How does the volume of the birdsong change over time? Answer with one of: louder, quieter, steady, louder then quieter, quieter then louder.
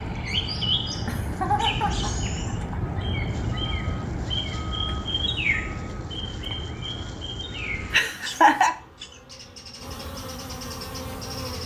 quieter.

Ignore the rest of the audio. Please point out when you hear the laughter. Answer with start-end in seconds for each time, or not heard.
1.0-2.8, 7.9-8.8.